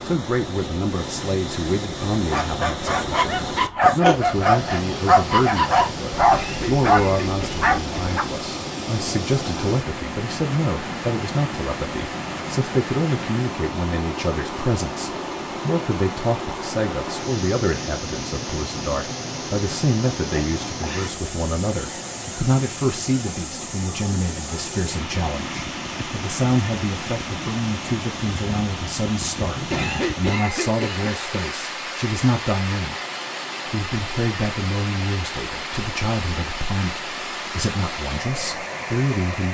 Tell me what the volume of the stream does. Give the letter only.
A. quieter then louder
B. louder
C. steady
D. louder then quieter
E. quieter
C.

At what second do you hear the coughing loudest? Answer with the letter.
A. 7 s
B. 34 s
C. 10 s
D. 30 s
D.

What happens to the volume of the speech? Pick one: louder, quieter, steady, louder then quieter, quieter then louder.
steady.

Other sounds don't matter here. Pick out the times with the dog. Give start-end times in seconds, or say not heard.
2.1-8.2.